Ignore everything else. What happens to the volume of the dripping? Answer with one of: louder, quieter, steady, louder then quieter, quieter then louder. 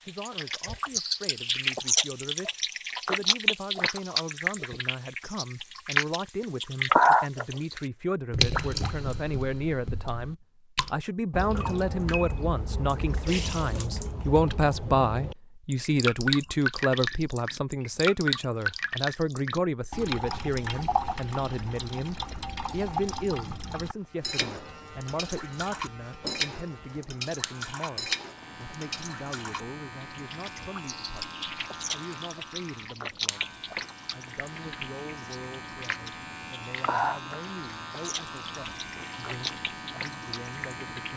quieter.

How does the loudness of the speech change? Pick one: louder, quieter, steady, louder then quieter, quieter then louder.
louder then quieter.